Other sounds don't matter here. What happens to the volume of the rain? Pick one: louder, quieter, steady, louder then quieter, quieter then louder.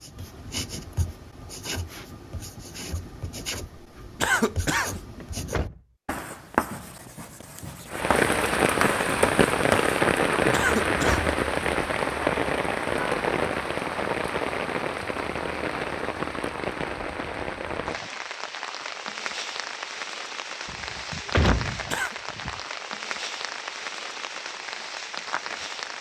quieter.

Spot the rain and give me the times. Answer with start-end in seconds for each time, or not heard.
7.9-25.9.